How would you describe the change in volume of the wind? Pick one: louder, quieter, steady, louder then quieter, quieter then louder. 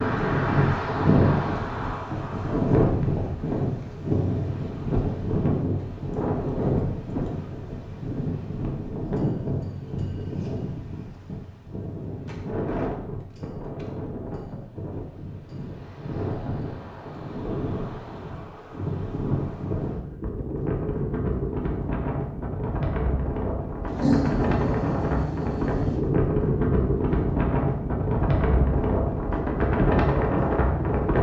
quieter then louder.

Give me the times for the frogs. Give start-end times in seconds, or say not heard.
not heard.